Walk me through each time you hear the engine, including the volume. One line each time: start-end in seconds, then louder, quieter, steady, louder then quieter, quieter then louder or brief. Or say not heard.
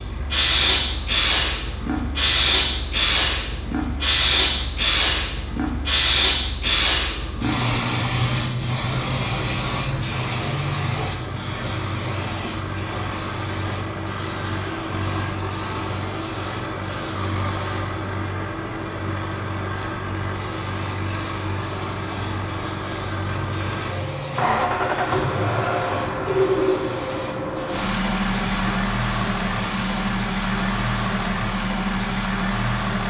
0.0-33.0 louder.